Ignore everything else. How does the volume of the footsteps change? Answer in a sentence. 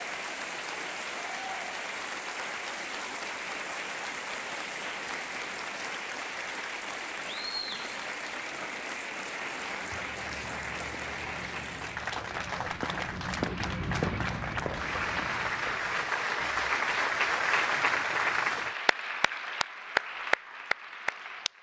The loudness of the footsteps goes up, then down.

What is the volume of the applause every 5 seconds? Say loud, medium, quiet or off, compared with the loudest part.
medium, medium, medium, loud, medium.